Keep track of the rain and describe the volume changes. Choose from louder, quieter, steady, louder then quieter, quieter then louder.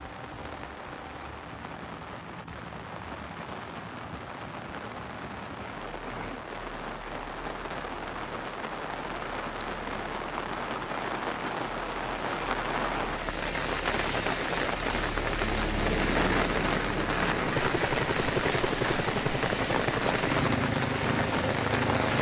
louder.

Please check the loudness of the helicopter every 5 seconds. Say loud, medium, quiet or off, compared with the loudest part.
quiet, quiet, medium, loud, loud.